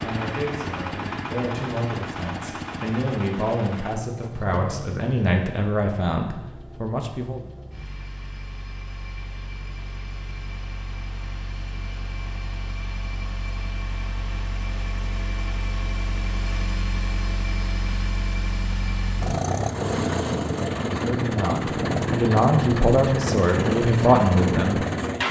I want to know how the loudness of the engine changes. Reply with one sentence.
The volume of the engine goes down, then up.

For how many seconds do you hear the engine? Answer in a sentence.
The engine can be heard for 25 seconds in total.